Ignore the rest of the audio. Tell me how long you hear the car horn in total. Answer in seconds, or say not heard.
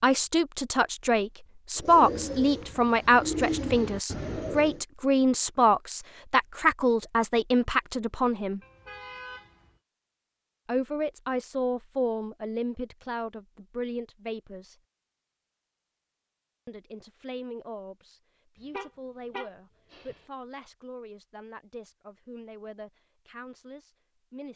3 s.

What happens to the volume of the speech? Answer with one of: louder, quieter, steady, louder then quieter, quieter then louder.
quieter.